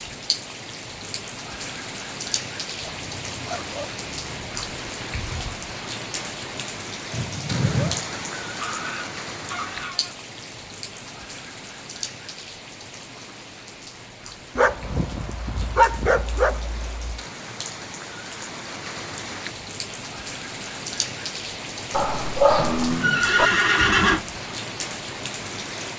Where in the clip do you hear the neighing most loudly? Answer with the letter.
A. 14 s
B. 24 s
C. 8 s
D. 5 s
B.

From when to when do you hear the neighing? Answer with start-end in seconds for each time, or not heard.
7.1-8.0, 22.6-24.2.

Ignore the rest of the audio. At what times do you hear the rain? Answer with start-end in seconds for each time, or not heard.
0.0-25.9.